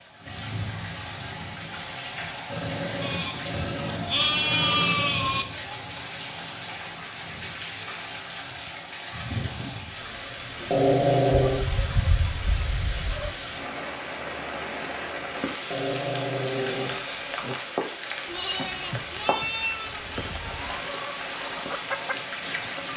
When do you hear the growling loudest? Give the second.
11 s.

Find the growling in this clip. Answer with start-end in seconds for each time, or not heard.
2.5-5.2, 10.6-11.7, 15.6-17.6.